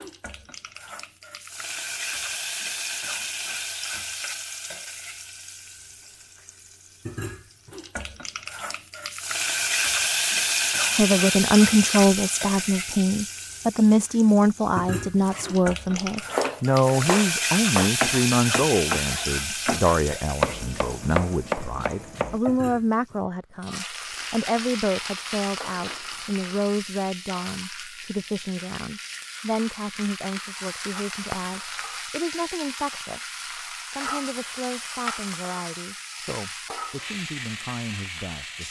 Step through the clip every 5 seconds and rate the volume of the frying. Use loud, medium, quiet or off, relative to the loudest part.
medium, medium, loud, loud, medium, medium, medium, medium.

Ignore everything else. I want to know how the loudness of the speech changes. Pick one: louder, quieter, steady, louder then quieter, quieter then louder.
quieter.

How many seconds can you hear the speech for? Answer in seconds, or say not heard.
28 s.